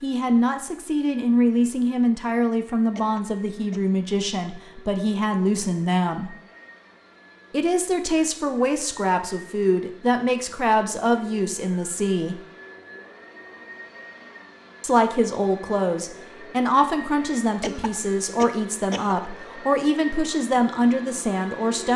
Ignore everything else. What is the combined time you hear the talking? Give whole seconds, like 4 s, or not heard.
18 s.